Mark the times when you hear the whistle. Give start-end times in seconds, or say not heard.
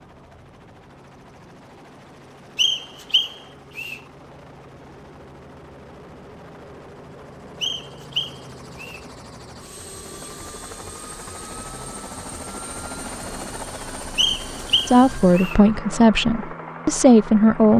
2.5-4.0, 7.6-9.0, 14.2-15.6.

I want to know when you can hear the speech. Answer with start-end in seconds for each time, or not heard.
14.8-17.7.